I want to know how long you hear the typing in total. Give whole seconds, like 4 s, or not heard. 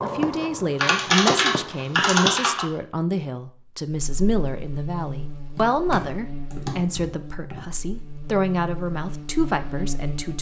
4 s.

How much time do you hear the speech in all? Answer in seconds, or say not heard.
10 s.